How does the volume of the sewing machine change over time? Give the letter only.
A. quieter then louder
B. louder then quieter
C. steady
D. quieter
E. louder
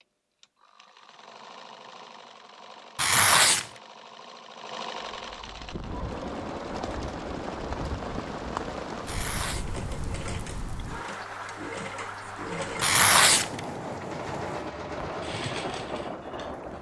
E.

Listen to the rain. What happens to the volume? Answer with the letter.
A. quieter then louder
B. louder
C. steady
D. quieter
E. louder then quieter
C.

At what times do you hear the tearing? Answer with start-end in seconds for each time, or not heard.
3.0-3.6, 9.1-9.7, 12.8-13.6.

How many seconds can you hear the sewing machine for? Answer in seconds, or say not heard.
17 s.